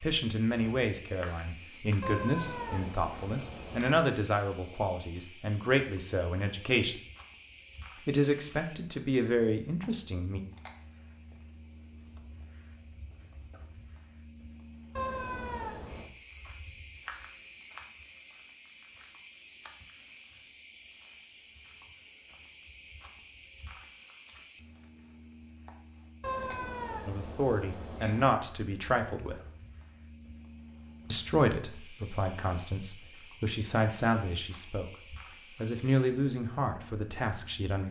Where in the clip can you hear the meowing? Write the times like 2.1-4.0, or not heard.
2.0-4.0, 14.9-16.1, 26.2-28.2.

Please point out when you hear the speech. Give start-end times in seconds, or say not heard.
0.0-7.0, 8.1-10.4, 27.1-29.4, 31.1-37.8.